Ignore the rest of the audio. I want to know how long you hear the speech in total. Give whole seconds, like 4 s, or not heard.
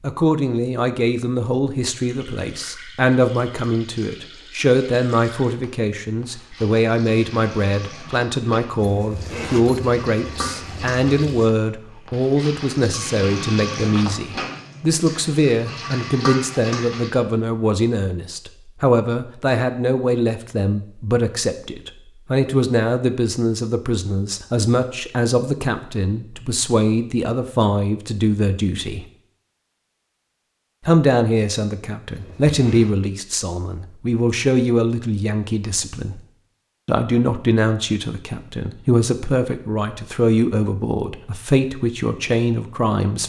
41 s.